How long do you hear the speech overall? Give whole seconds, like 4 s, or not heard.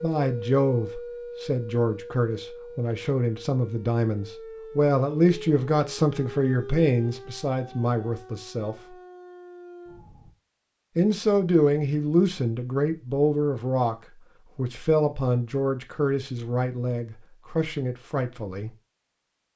16 s.